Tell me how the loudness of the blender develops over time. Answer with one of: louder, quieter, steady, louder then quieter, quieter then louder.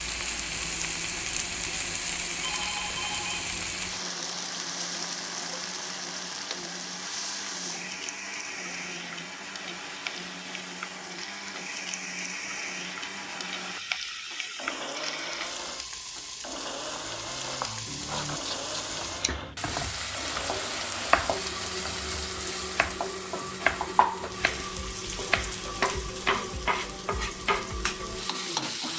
steady.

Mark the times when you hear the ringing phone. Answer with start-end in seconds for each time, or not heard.
2.4-3.5.